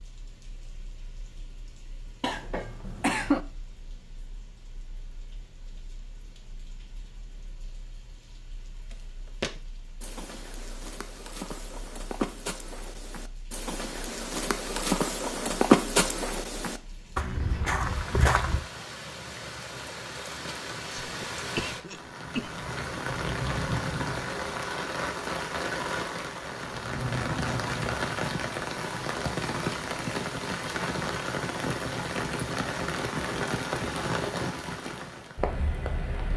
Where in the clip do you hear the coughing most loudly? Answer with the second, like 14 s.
3 s.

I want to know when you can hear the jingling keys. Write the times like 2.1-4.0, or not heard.
not heard.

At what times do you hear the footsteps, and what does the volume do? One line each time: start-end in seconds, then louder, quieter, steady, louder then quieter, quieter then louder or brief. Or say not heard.
8.9-18.6 louder then quieter.